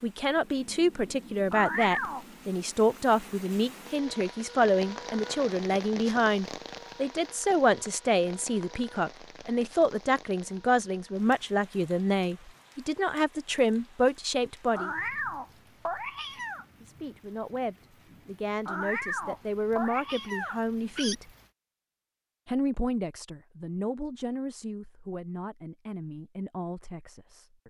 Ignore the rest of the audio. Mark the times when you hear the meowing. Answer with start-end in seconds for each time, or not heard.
1.5-2.2, 14.8-16.6, 18.6-21.1.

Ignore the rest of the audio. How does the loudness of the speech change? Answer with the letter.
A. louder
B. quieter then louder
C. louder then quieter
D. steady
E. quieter
E.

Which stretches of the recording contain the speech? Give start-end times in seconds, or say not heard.
0.0-14.9, 16.8-21.2, 22.4-27.6.